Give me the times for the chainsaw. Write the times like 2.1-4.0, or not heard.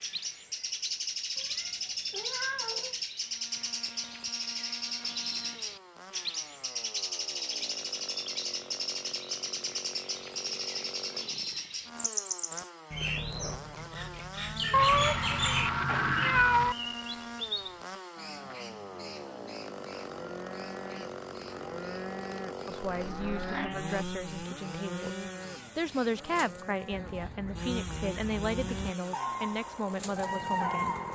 3.2-31.0.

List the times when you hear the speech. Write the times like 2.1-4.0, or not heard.
22.6-25.1, 25.8-30.9.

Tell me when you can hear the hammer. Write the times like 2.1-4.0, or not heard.
not heard.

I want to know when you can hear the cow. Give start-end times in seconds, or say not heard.
19.9-27.4.